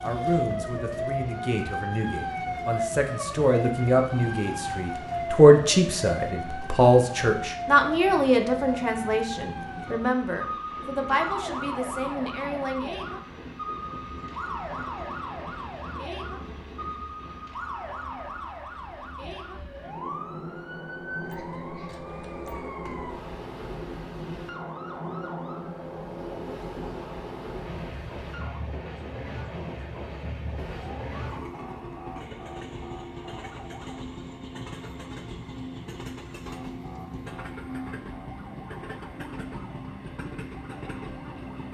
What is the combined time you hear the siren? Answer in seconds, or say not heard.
37 s.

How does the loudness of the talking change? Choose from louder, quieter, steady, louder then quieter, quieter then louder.
louder then quieter.